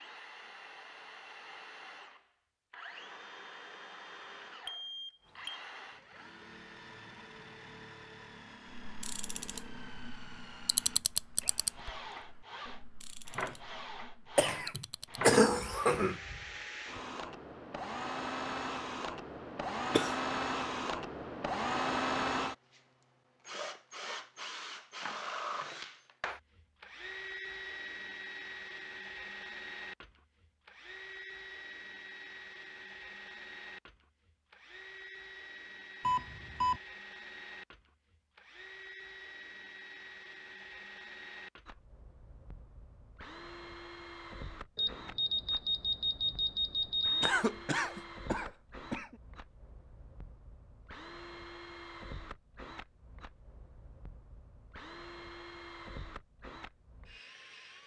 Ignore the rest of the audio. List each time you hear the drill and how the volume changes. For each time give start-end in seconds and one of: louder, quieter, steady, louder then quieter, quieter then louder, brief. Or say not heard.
0.0-57.8 louder then quieter.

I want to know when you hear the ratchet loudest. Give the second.
11 s.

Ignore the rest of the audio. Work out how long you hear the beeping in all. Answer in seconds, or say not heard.
4 s.